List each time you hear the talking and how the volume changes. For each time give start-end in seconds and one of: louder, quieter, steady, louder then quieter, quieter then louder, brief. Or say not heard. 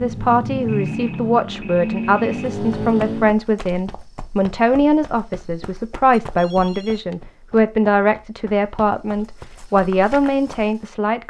0.0-11.2 steady.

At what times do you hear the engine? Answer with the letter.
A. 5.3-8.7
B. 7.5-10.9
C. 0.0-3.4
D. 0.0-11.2
C.